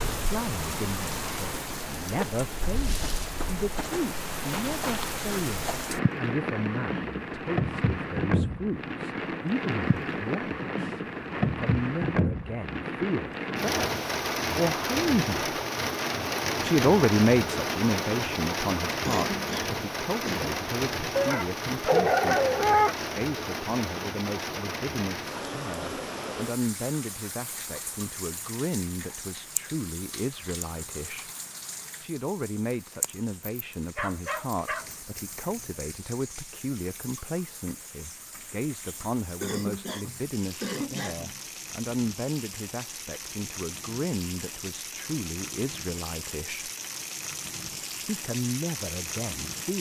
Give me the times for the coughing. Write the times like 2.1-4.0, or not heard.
19.1-20.6, 39.4-41.4.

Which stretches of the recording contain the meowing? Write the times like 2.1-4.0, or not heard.
not heard.